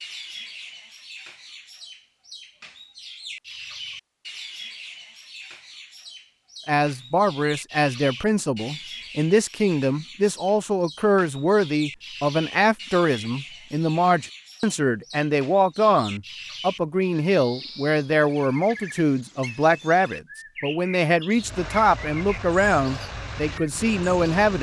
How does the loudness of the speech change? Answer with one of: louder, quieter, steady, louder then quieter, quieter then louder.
steady.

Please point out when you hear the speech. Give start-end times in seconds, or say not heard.
6.7-24.5.